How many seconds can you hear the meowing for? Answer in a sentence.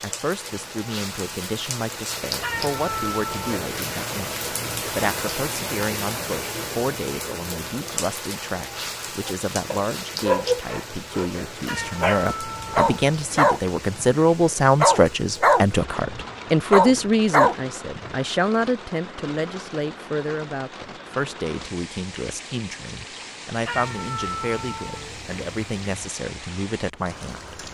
You can hear the meowing for 5 seconds altogether.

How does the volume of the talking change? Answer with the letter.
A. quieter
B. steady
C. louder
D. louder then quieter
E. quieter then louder
D.